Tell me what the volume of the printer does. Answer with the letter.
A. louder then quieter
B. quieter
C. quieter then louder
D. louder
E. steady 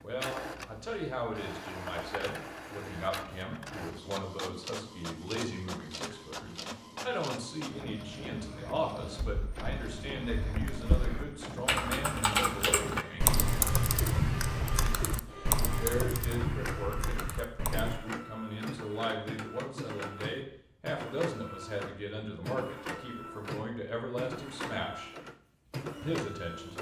E.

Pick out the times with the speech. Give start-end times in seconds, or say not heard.
0.0-13.4, 15.7-25.1, 26.0-26.7.